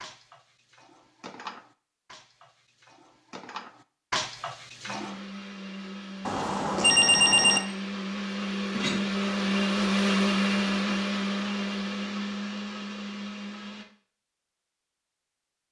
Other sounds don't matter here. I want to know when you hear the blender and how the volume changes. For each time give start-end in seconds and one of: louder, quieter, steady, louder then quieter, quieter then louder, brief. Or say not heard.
4.8-13.8 louder then quieter.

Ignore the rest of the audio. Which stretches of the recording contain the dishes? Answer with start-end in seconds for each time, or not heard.
0.0-5.2.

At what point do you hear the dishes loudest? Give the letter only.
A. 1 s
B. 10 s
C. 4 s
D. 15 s
C.